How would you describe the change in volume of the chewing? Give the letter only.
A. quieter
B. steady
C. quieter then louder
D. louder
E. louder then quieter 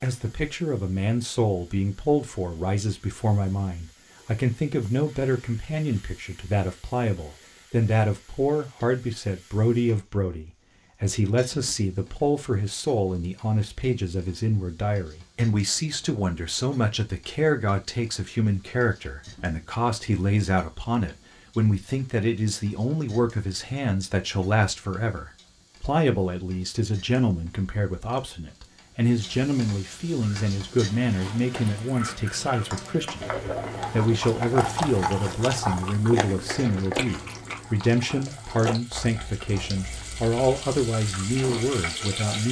E.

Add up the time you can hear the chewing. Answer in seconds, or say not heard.
12 s.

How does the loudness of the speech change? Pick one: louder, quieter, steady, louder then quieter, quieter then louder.
steady.